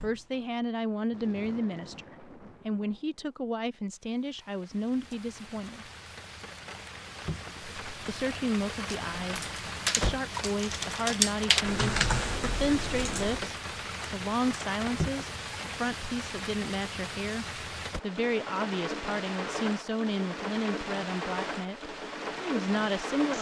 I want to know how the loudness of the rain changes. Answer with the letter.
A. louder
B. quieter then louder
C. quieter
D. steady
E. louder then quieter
A.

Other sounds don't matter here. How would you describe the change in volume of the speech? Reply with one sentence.
The volume of the speech stays about the same.